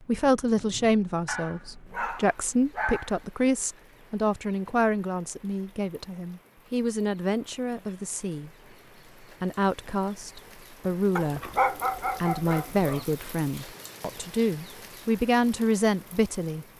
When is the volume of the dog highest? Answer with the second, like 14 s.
12 s.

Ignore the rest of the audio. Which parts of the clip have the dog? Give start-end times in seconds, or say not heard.
1.2-3.2, 11.2-13.1.